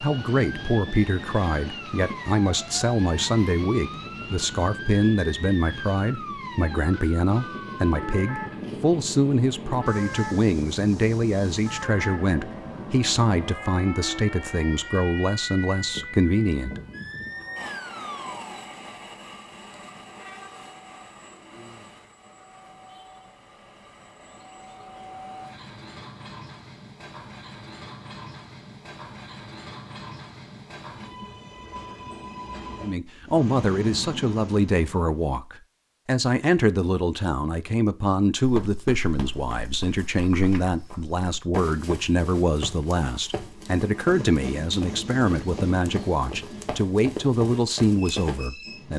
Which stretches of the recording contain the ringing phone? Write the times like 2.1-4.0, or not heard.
not heard.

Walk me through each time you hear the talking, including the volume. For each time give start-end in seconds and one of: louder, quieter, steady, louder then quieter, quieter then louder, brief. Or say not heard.
0.0-16.8 steady
32.8-48.9 steady.